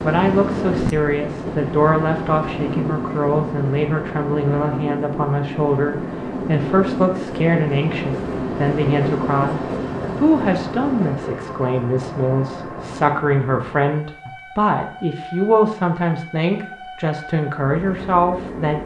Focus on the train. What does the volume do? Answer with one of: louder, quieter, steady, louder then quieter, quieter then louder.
quieter.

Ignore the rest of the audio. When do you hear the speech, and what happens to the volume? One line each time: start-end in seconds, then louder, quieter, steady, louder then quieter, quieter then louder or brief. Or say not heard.
0.0-18.8 steady.